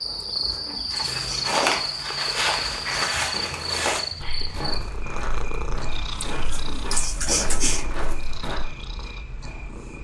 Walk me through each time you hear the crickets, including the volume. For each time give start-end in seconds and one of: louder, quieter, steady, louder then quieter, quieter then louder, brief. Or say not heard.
0.0-10.0 quieter.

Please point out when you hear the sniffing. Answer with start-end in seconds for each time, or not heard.
0.5-1.6, 6.5-7.8.